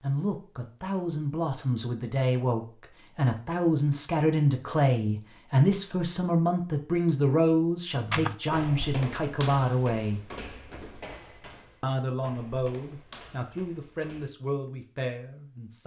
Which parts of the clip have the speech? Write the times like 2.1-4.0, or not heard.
0.0-10.2, 11.8-15.8.